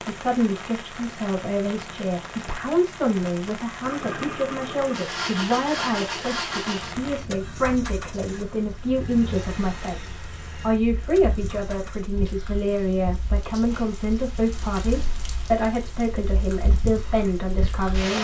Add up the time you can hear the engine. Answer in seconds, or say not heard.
8 s.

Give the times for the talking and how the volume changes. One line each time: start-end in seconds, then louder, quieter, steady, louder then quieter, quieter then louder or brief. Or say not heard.
0.0-18.1 steady.